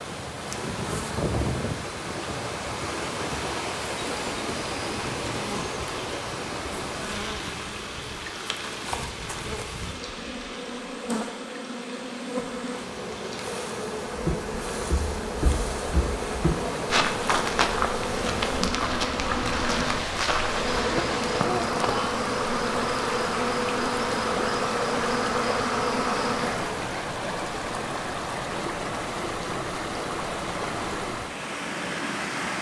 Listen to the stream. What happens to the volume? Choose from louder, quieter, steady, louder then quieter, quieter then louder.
quieter then louder.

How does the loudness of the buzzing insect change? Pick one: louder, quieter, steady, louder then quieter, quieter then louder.
louder.